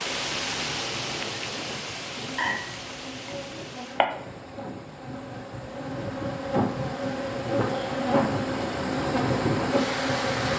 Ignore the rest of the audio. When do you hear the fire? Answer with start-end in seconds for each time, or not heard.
not heard.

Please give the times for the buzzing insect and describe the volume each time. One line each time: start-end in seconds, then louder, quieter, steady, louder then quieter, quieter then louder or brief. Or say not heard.
0.0-10.5 louder.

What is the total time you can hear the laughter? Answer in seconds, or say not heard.
2 s.